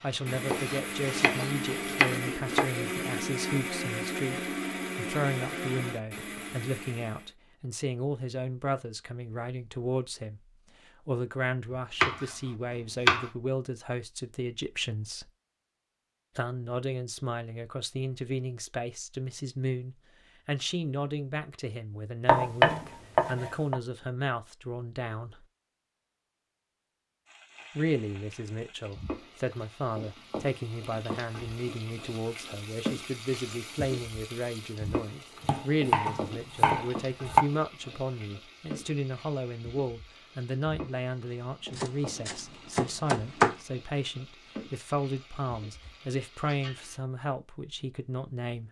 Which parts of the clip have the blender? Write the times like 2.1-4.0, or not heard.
0.1-7.3.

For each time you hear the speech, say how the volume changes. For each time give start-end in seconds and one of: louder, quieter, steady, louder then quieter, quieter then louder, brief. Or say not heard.
0.0-15.3 steady
16.4-25.4 steady
27.8-48.6 steady.